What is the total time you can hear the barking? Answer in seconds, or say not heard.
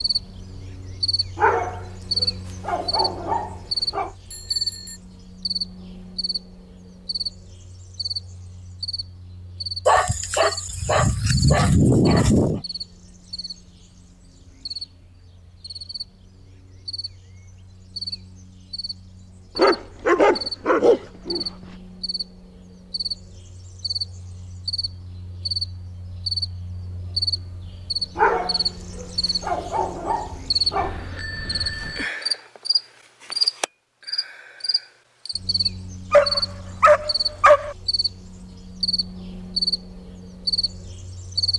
12 s.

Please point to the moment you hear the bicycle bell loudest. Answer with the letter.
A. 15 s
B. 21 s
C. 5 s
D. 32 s
D.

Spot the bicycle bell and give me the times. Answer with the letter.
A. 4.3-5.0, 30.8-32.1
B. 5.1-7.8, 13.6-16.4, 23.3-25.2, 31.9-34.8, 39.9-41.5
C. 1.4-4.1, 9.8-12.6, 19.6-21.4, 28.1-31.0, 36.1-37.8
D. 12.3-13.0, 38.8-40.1
A.